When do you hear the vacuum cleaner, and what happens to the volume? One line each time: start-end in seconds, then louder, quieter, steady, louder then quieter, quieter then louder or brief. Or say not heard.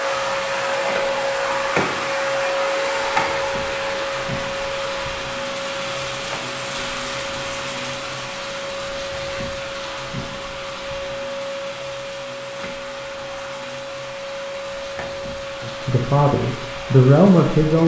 0.0-17.8 quieter.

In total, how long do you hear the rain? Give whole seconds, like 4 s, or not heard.
18 s.